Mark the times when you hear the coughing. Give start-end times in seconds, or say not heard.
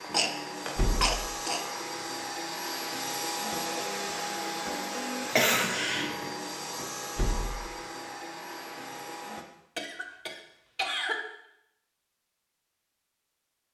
0.0-1.6, 5.3-6.3, 9.8-11.2.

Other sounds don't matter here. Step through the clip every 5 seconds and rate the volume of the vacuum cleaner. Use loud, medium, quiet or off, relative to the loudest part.
loud, loud, off.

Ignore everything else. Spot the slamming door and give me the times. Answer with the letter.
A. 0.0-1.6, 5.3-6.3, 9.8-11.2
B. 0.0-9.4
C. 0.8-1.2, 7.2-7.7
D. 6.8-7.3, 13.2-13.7
C.